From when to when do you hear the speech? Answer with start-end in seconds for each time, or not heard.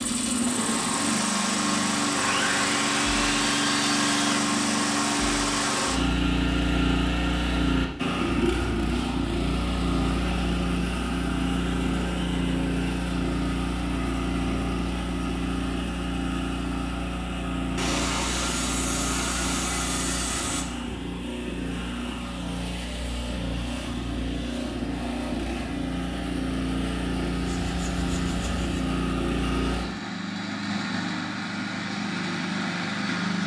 not heard.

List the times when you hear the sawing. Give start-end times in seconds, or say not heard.
2.1-4.3, 17.8-20.6, 27.4-28.9.